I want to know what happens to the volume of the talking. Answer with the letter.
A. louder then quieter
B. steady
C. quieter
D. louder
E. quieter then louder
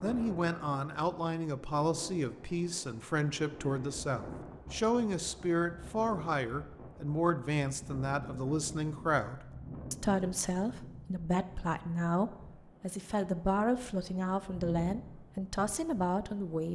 B.